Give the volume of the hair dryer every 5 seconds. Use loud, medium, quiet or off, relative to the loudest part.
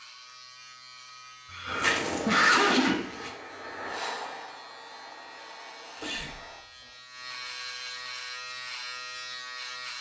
loud, medium.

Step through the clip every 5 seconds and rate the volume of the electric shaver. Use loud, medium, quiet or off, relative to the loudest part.
medium, loud.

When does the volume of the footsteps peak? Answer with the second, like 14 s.
2 s.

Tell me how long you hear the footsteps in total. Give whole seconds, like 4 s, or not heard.
2 s.